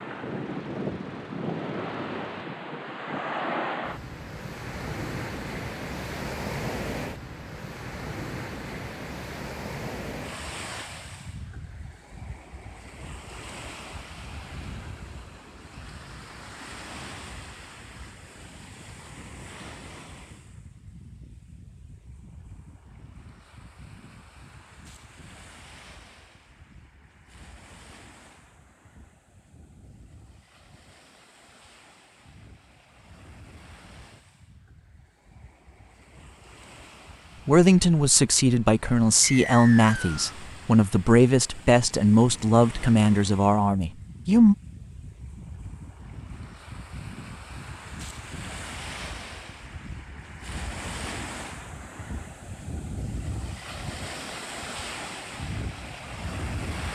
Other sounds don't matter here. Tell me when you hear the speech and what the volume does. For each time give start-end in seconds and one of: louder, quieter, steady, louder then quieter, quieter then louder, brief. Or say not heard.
37.5-44.5 steady.